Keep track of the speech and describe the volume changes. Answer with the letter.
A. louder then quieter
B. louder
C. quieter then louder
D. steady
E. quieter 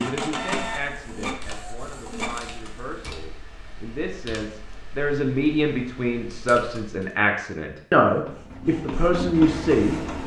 B.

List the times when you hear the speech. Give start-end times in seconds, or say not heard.
0.0-10.2.